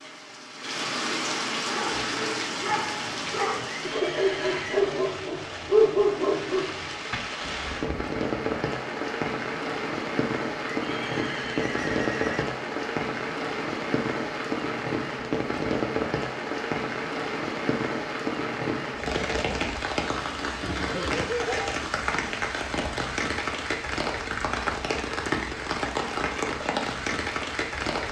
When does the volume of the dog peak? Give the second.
6 s.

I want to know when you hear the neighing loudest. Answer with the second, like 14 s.
21 s.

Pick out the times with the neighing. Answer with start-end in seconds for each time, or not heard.
3.9-4.8, 10.8-12.4, 20.6-21.8.